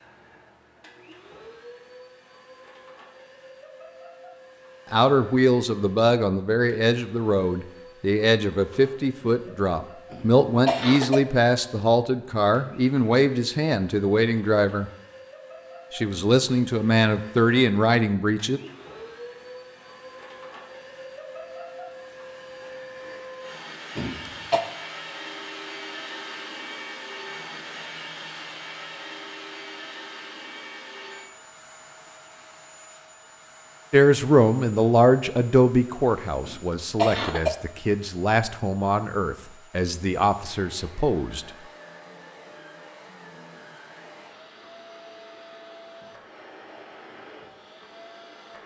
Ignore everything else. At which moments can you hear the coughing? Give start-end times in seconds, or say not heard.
10.1-11.2, 23.9-24.6, 36.5-37.5.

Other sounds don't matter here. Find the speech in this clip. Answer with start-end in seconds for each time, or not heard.
4.9-14.9, 15.9-18.6, 33.9-41.5.